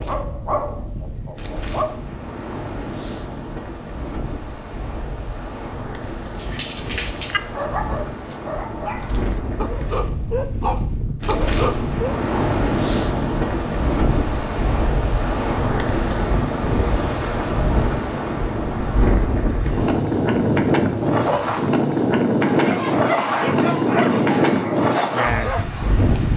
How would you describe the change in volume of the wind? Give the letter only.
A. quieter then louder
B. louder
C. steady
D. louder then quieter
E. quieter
B.